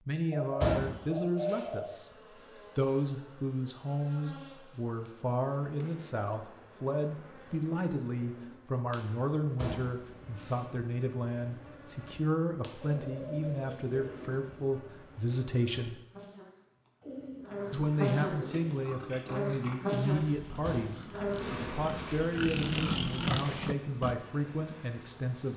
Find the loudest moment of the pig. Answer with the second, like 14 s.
23 s.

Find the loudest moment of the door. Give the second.
1 s.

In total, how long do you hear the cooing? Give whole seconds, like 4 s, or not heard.
5 s.